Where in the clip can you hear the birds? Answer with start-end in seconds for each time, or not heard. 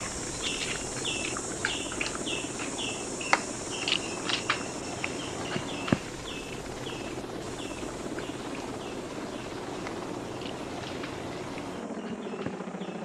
0.0-13.0.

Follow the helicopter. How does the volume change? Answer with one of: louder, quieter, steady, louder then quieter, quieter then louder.
steady.